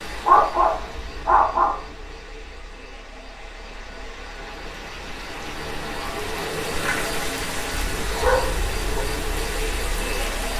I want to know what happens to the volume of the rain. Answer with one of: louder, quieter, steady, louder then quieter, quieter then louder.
louder.